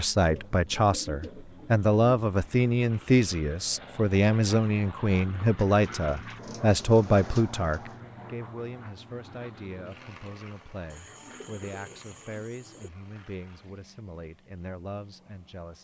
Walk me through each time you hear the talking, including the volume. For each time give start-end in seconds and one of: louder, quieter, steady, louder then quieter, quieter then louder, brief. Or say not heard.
0.0-15.7 quieter.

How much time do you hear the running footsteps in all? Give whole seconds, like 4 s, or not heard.
not heard.